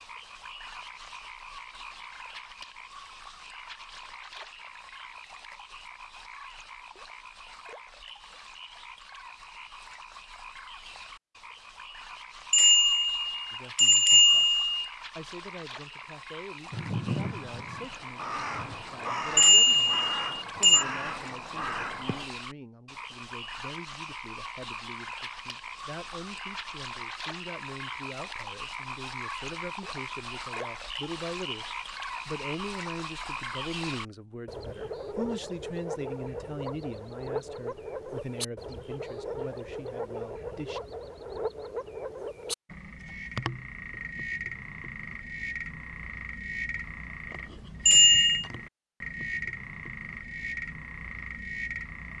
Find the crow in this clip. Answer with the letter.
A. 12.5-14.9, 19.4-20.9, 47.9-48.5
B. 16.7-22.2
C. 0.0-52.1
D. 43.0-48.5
B.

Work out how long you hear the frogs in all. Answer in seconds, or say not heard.
52 s.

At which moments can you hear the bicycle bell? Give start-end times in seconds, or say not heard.
12.5-14.9, 19.4-20.9, 47.9-48.5.